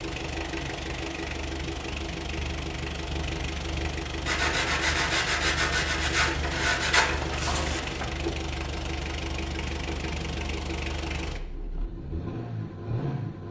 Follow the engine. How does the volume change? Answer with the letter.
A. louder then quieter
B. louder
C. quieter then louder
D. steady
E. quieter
D.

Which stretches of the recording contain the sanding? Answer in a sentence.
The sanding can be heard from 4.2 to 8.1 s.